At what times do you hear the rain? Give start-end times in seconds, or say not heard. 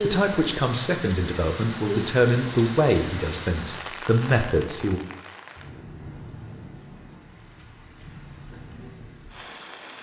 0.0-9.9.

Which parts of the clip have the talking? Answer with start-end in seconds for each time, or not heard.
0.0-5.0.